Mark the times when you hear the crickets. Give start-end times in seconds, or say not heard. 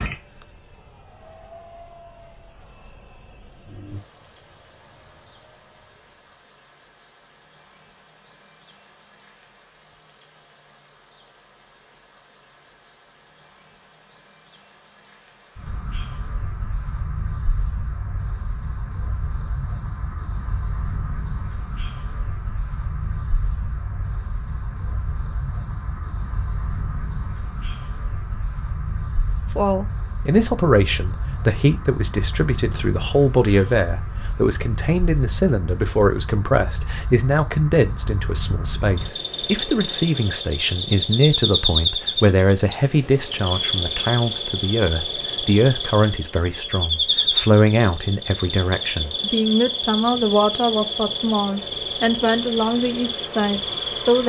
0.0-54.2.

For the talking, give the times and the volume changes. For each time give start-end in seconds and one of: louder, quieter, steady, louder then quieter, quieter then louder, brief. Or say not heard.
29.6-54.2 steady.